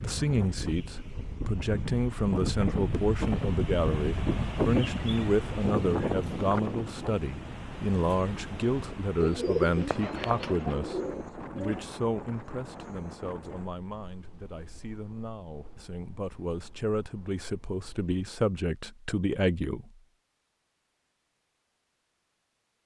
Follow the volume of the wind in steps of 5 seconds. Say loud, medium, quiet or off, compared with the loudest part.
loud, loud, medium, quiet, off.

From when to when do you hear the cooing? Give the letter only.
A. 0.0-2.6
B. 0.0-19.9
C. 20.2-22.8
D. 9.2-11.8
D.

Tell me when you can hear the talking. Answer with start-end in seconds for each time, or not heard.
0.0-19.9.